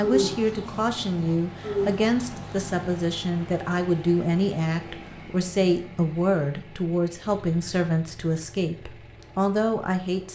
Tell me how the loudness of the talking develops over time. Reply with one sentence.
The volume of the talking stays about the same.